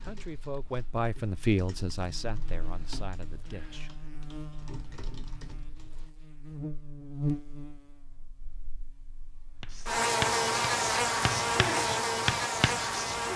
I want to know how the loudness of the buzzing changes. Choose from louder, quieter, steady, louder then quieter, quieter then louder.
louder.